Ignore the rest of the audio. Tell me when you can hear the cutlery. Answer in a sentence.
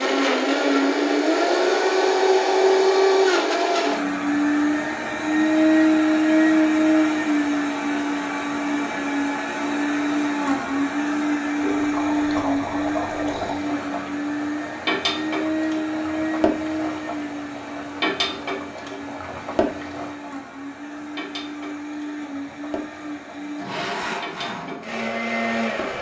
The cutlery can't be heard in this clip.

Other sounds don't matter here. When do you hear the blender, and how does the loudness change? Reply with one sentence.
You can hear the blender from 0.0 to 25.9 s, getting quieter.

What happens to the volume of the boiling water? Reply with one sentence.
The loudness of the boiling water goes down.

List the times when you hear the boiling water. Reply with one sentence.
The boiling water can be heard from 11.6 to 25.9 s.